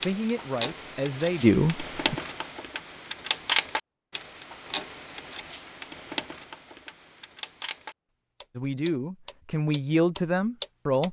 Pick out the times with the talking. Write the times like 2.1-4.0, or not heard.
0.0-2.1, 8.6-11.0.